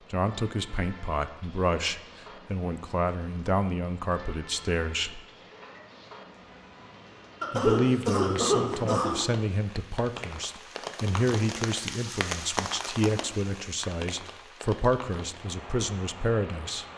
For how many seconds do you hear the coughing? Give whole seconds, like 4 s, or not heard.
2 s.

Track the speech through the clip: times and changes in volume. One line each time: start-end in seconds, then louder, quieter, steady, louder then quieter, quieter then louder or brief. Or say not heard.
0.1-5.2 steady
7.5-16.9 steady.